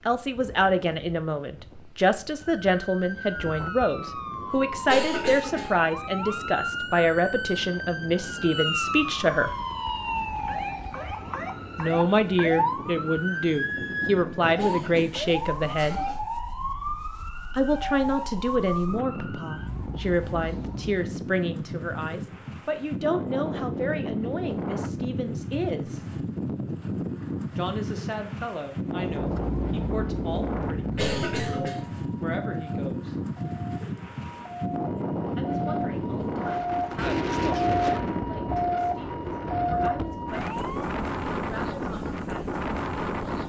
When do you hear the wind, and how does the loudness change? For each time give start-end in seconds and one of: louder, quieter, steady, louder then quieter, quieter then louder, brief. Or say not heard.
0.0-43.4 louder.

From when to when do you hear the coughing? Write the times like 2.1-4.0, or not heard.
4.8-5.8, 14.6-16.2, 30.9-31.8.